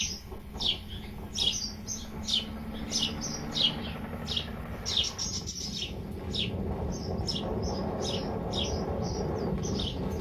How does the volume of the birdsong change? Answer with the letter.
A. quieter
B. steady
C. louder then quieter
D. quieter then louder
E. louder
A.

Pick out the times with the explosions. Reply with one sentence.
You can't hear the explosions here.